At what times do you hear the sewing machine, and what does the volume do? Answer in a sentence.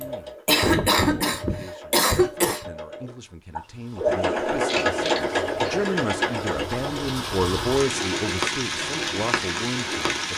You can hear the sewing machine from 0.0 to 10.3 s, getting louder then quieter.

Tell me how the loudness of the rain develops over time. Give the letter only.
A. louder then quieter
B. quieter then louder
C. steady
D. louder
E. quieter
D.